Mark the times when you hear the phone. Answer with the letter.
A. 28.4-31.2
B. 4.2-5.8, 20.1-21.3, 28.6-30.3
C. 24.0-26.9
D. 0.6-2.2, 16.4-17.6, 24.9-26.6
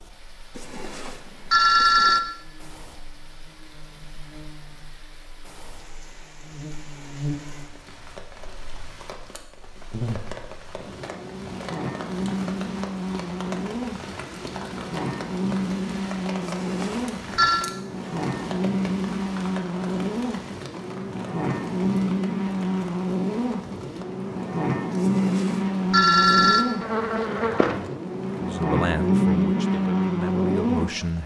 D.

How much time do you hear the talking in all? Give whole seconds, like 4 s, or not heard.
3 s.